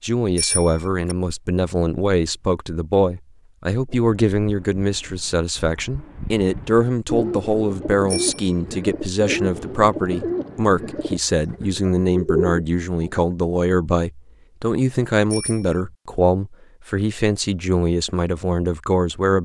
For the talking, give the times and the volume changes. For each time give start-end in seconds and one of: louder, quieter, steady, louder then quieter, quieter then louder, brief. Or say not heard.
0.0-19.4 steady.